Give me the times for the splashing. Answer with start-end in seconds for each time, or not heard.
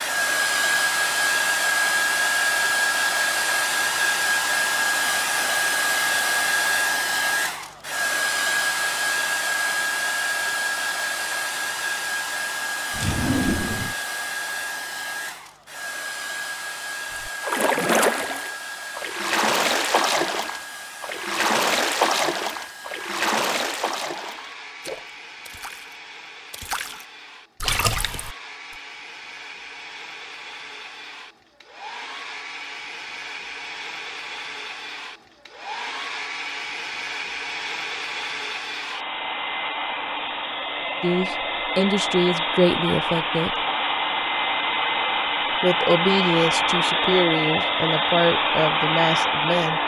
17.1-28.4.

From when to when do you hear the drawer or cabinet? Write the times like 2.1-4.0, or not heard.
12.9-13.9.